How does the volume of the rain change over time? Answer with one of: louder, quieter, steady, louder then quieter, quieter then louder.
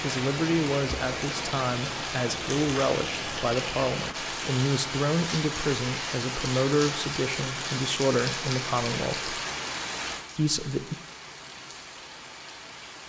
quieter.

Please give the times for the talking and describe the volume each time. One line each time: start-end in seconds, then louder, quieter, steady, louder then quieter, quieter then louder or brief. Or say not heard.
0.0-9.3 steady
10.3-10.9 brief.